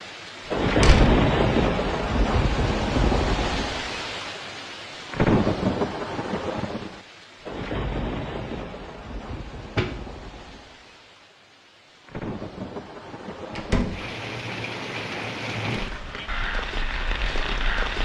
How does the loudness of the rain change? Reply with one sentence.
The loudness of the rain goes down, then up.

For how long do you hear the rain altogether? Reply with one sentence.
You can hear the rain for 18 seconds altogether.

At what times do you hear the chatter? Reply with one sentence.
You can't hear the chatter here.